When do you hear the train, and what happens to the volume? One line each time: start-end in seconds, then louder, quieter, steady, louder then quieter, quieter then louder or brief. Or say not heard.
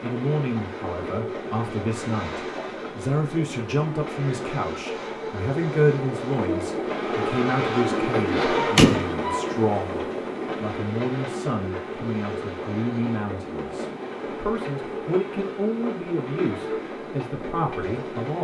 0.0-18.3 louder then quieter.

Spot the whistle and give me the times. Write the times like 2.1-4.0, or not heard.
not heard.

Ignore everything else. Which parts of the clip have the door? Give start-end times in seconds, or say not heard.
7.9-9.1.